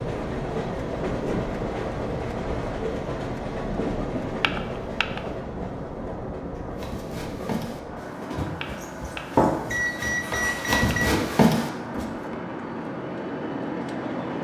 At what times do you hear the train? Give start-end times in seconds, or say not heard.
0.0-14.4.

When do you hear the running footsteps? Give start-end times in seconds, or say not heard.
6.8-12.3.